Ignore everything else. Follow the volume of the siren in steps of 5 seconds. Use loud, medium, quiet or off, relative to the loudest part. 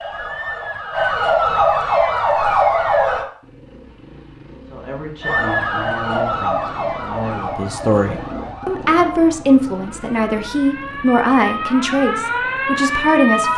loud, medium, medium.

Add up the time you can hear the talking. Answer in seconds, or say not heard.
9 s.